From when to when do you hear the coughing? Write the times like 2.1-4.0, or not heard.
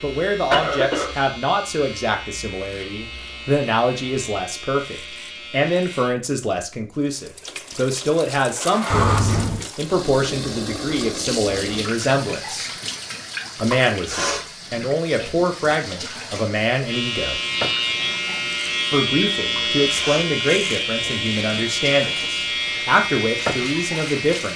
0.5-1.1, 8.9-9.7, 17.9-18.5.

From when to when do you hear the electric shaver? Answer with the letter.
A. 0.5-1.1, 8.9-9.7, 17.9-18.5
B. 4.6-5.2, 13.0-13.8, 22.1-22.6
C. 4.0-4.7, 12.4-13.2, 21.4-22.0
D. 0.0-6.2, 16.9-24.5
D.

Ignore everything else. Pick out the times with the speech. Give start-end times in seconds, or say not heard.
0.0-12.7, 13.6-17.4, 18.9-24.5.